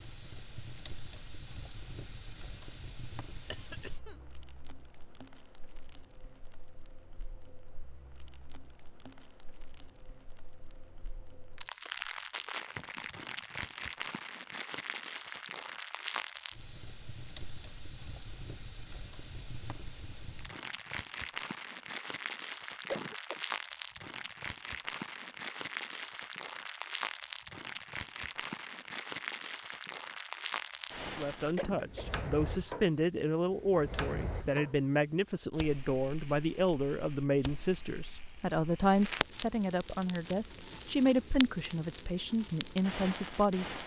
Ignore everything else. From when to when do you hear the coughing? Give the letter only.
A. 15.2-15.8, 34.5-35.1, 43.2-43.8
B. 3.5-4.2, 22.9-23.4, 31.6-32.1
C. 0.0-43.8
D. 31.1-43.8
B.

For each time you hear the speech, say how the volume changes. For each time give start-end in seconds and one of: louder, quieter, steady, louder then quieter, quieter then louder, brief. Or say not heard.
31.1-43.8 steady.